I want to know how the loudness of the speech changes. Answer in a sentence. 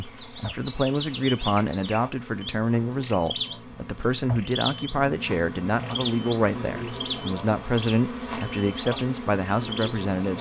The loudness of the speech stays about the same.